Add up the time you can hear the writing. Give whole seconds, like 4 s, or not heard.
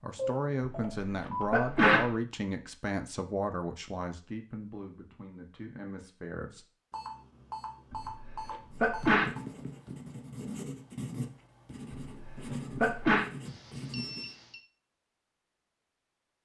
6 s.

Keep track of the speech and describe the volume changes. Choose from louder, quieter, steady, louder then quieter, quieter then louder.
quieter.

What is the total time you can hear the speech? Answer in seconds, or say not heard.
7 s.